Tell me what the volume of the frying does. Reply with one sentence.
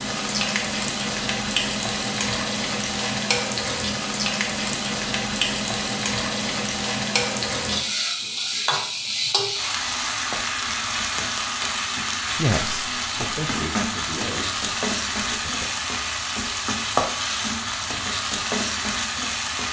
The volume of the frying stays about the same.